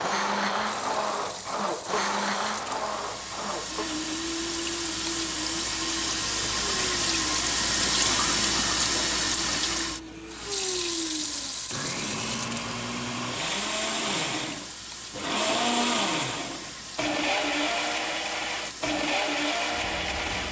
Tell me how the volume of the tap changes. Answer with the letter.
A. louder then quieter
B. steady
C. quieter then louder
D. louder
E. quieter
A.